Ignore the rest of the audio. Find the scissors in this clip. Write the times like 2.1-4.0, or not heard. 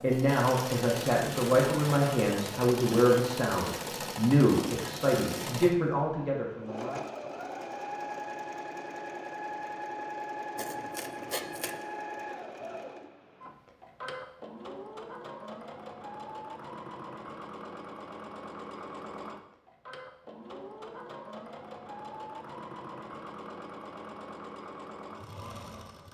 10.6-11.8.